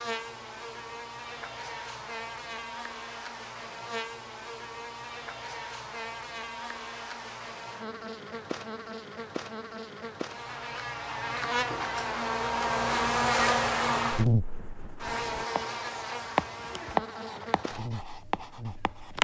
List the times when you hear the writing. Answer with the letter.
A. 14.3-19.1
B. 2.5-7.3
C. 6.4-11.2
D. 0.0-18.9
A.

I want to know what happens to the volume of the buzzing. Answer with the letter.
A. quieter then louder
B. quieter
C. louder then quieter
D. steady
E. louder
C.